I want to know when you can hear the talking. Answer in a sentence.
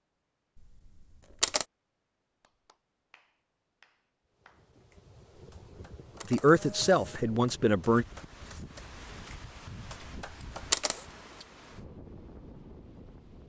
The talking can be heard from 6.3 to 8.1 s.